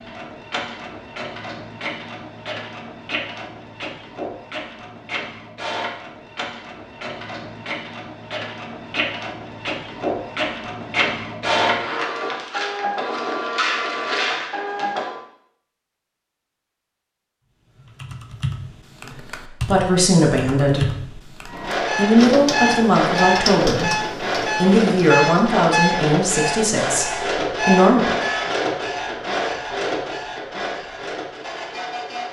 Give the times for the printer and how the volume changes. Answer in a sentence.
The printer can be heard from 0.0 to 15.2 s, getting louder; and from 21.4 to 32.2 s, getting quieter.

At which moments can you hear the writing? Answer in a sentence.
The writing can't be heard in this clip.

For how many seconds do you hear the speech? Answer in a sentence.
The speech can be heard for 8 seconds in total.